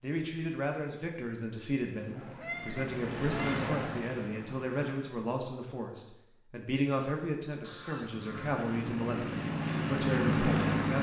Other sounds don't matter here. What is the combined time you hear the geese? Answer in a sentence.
You can hear the geese for 3 seconds altogether.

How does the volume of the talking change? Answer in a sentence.
The volume of the talking stays about the same.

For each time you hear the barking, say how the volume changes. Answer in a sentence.
The barking can't be heard in this clip.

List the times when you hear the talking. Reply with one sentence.
You can hear the talking from 0.0 to 10.9 s.